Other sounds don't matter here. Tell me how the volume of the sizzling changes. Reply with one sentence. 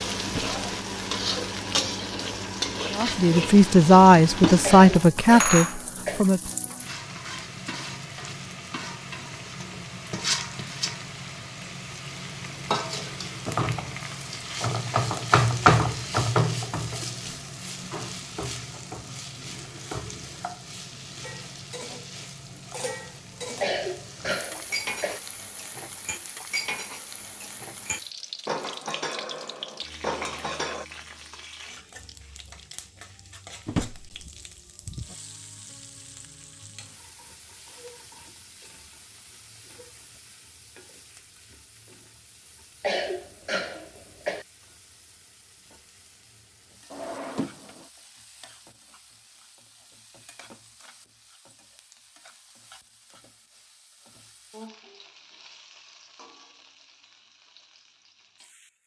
The volume of the sizzling goes down.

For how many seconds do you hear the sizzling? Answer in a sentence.
The sizzling can be heard for 59 seconds in total.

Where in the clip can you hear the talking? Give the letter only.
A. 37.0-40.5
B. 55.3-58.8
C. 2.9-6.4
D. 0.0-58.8
C.